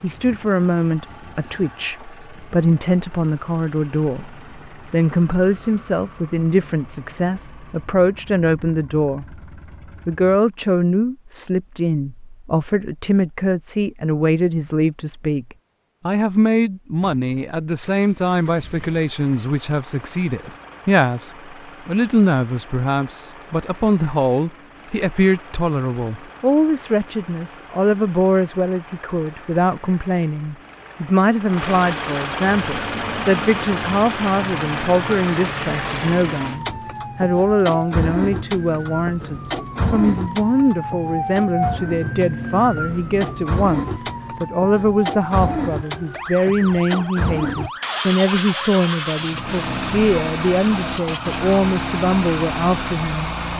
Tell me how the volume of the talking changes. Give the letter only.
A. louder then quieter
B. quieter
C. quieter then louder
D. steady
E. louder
D.